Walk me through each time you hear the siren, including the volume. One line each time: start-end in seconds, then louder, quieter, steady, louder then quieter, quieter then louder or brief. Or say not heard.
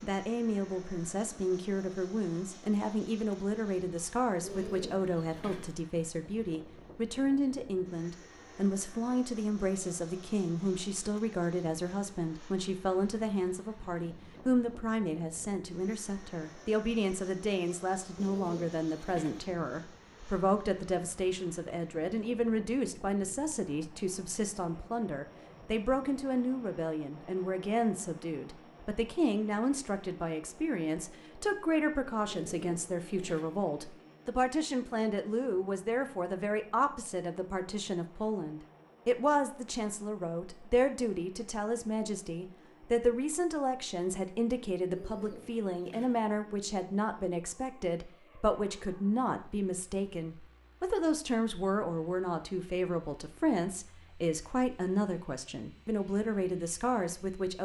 not heard.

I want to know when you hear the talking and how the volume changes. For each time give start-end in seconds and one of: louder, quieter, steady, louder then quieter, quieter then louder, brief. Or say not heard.
0.0-57.5 steady.